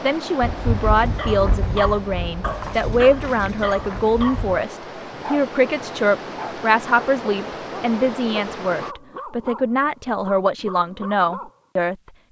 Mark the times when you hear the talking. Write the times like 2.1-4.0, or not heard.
0.0-11.9.